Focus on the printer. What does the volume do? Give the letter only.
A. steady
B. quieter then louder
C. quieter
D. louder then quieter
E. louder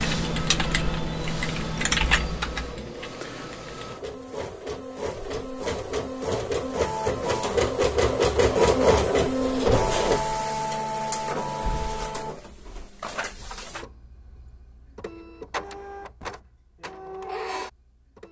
D.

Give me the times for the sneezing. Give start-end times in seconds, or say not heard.
not heard.